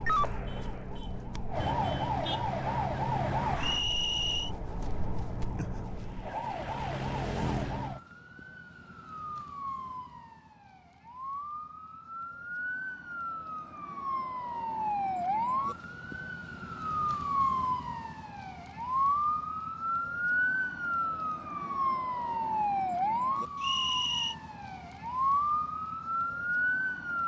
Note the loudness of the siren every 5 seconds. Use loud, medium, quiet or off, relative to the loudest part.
loud, medium, medium, loud, loud, loud.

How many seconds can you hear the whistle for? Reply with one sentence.
The whistle can be heard for 2 seconds in total.